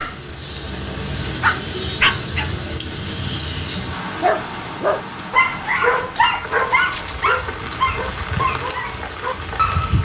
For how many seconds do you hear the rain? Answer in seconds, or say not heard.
10 s.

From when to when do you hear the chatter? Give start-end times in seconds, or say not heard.
not heard.